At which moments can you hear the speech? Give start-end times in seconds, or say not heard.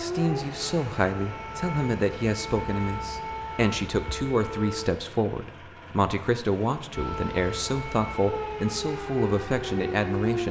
0.0-10.4.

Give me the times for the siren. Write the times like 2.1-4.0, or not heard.
0.0-5.0, 6.9-10.4.